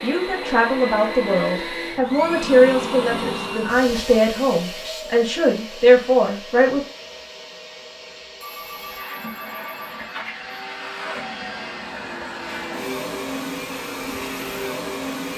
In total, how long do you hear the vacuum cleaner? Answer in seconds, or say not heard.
15 s.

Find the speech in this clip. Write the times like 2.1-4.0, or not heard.
0.0-6.8.